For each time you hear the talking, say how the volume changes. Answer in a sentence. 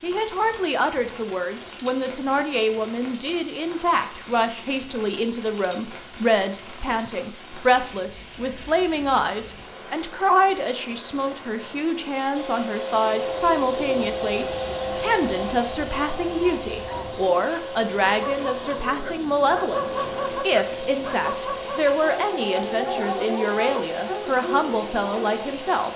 You can hear the talking from 0.0 to 25.9 s, at a steady volume.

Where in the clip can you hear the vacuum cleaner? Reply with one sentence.
The vacuum cleaner can be heard from 12.3 to 25.9 s.